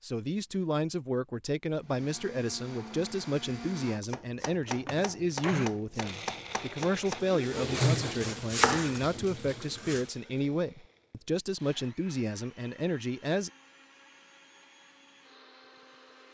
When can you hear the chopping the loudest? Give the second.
9 s.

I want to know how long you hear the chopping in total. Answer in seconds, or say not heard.
6 s.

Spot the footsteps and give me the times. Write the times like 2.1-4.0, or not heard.
not heard.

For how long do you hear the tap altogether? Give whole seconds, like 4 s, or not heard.
3 s.